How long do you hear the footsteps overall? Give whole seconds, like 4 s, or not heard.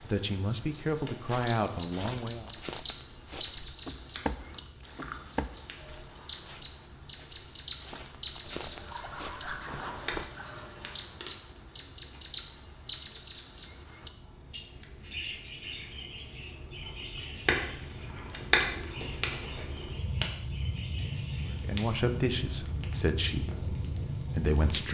9 s.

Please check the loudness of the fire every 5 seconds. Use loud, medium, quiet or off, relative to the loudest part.
quiet, quiet, quiet, loud, loud.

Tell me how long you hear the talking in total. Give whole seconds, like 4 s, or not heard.
6 s.